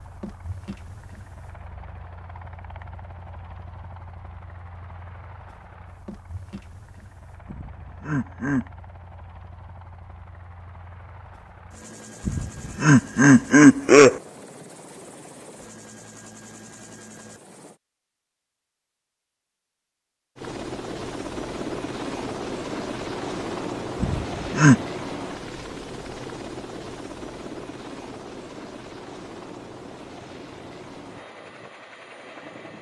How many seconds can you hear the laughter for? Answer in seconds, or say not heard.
4 s.